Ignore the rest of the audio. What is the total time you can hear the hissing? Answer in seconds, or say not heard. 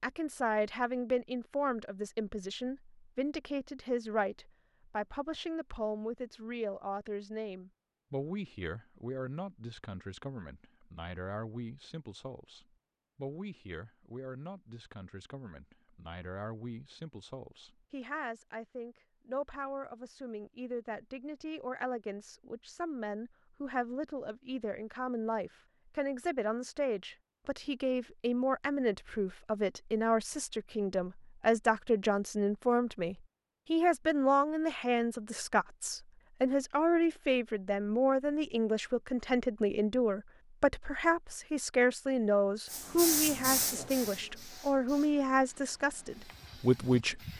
5 s.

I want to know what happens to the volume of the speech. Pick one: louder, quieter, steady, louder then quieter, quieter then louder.
quieter then louder.